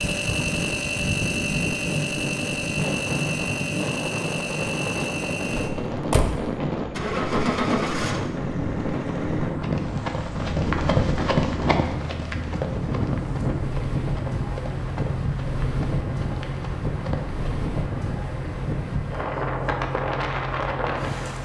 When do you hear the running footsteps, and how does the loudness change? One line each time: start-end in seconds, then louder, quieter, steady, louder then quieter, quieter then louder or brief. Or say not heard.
9.6-17.4 quieter.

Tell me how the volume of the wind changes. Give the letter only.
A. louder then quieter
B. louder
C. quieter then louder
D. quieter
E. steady
E.